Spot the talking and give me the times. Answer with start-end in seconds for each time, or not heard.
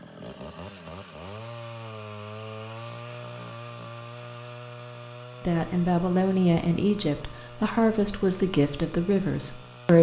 5.5-9.9.